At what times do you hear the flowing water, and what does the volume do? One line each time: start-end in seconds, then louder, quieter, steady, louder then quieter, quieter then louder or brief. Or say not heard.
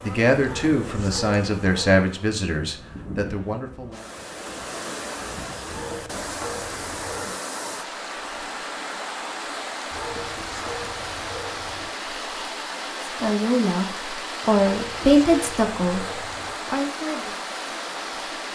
3.9-18.5 steady.